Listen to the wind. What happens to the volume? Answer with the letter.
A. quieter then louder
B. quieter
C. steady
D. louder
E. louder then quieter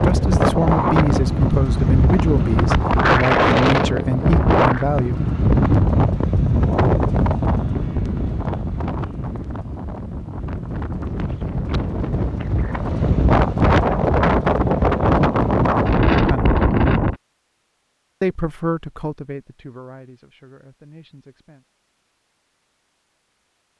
A.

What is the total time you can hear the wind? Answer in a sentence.
The wind can be heard for 17 seconds in total.